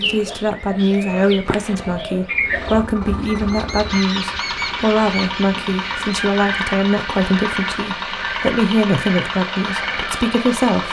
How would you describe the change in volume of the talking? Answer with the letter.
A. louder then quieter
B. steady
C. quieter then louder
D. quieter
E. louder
B.